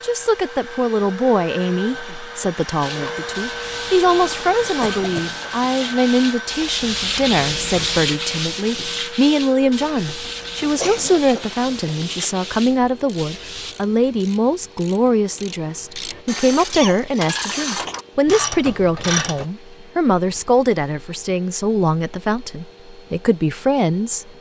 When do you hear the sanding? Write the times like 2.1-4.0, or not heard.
2.8-13.8.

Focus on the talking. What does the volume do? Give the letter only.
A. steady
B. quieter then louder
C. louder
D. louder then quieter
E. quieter
A.